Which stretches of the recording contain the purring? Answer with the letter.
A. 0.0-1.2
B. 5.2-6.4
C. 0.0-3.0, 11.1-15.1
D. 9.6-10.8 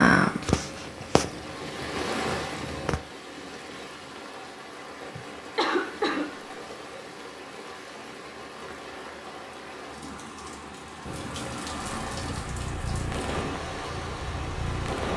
C.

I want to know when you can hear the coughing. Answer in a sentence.
You can hear the coughing from 5.2 to 6.4 s.